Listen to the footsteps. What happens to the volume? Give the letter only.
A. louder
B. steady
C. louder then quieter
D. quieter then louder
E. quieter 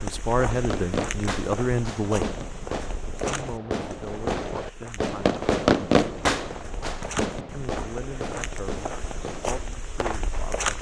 D.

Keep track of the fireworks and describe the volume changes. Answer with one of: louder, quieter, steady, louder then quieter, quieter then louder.
louder then quieter.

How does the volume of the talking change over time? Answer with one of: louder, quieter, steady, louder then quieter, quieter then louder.
quieter.